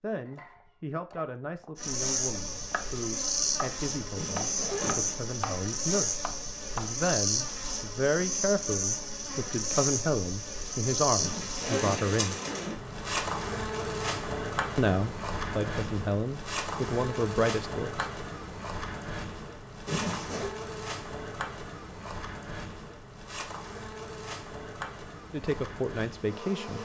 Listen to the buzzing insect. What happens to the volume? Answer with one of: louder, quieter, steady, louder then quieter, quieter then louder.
quieter.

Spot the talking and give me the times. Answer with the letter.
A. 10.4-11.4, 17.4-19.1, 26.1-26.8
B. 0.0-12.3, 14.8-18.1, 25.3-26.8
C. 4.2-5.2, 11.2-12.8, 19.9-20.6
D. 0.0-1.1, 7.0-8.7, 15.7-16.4
B.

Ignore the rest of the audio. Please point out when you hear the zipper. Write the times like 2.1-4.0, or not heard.
4.2-5.2, 11.2-12.8, 19.9-20.6.